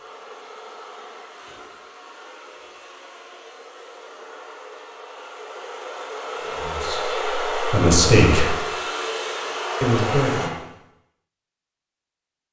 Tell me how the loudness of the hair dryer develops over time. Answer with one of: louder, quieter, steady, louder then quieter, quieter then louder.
louder.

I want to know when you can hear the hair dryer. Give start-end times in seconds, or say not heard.
0.0-10.5.